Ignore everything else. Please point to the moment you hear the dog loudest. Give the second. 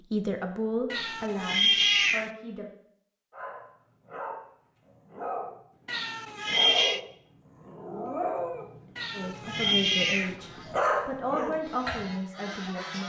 11 s.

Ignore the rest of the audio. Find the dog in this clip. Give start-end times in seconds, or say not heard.
3.3-12.1.